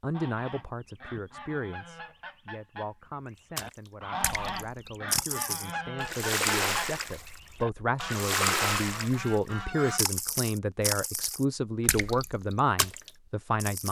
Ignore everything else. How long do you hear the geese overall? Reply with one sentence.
The geese can be heard for 10 seconds in total.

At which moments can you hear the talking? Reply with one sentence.
You can hear the talking from 0.0 to 13.8 s.